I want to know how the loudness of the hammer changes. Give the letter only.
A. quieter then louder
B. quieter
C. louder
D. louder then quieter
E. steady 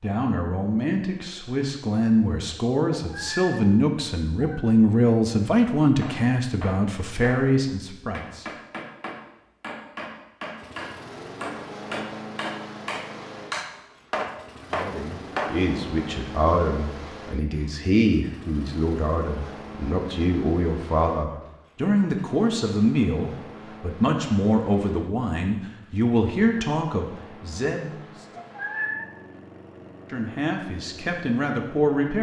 C.